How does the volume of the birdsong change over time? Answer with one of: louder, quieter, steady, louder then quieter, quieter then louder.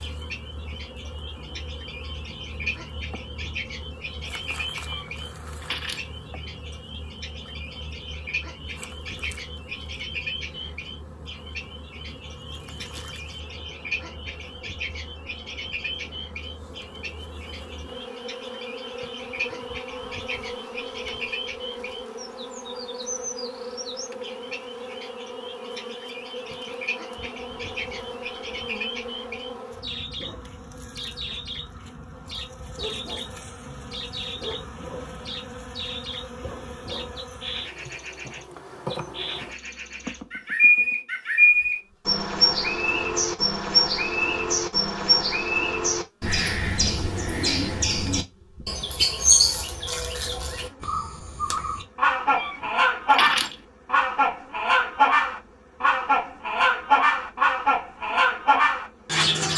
louder.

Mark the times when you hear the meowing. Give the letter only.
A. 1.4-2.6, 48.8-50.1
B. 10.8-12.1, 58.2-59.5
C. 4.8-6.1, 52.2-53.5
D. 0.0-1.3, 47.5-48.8
C.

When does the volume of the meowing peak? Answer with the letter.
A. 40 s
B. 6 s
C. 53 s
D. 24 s
C.